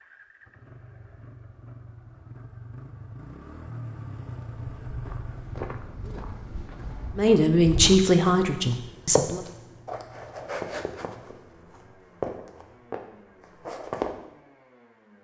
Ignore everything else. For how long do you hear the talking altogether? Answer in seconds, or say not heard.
2 s.